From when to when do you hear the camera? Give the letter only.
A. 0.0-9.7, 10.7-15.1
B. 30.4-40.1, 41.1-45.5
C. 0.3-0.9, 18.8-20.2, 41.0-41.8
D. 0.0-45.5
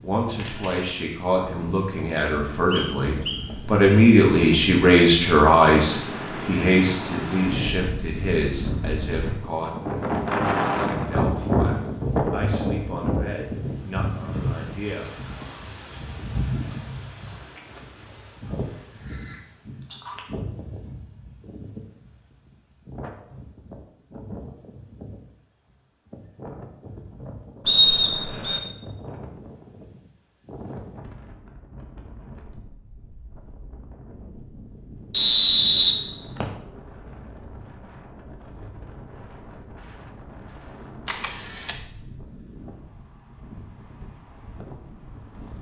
C.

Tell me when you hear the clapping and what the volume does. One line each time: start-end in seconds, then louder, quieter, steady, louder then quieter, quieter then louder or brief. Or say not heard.
not heard.